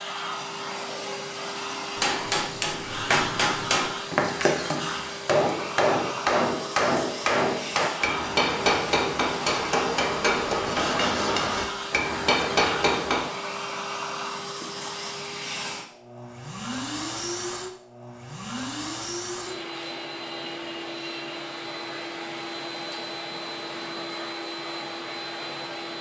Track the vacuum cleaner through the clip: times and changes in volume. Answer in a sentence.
The vacuum cleaner can be heard from 0.0 to 25.9 s, at a steady volume.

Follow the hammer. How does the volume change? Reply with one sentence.
The volume of the hammer stays about the same.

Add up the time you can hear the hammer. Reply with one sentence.
You can hear the hammer for 11 seconds altogether.